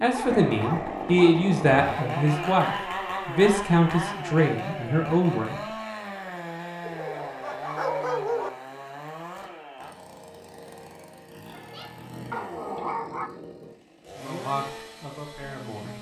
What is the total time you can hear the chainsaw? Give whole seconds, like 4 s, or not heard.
16 s.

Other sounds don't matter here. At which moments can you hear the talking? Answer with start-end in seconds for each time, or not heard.
0.0-5.6, 14.2-15.9.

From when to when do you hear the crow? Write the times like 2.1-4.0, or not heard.
not heard.